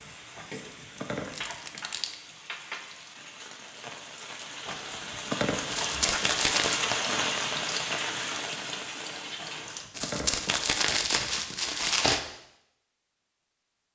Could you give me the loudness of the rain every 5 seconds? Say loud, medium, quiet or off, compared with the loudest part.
medium, loud, off.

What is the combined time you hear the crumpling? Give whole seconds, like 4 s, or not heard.
4 s.